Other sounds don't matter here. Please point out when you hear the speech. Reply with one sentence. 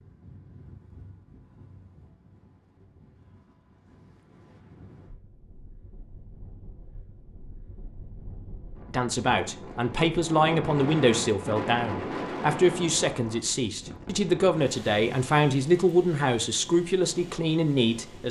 You can hear the speech from 8.9 to 18.2 s.